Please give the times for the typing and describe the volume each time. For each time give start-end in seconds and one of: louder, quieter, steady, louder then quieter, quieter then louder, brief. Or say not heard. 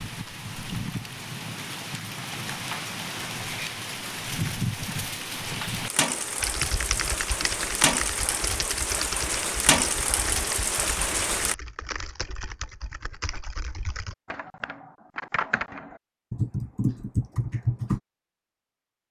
6.4-18.0 quieter then louder.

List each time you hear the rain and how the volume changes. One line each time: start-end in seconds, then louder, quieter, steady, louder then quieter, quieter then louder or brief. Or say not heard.
0.0-11.6 louder.